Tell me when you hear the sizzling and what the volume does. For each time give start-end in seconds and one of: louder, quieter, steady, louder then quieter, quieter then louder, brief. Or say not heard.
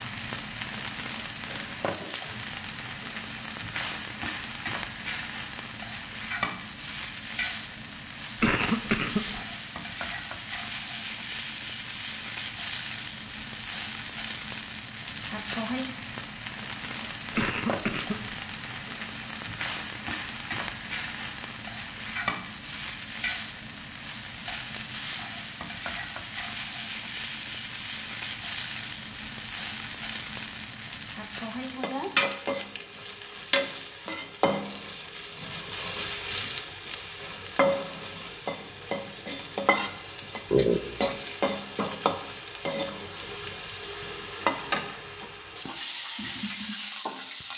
0.0-47.5 steady.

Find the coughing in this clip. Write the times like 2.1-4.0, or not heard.
8.3-9.4, 17.3-18.4, 40.5-41.1.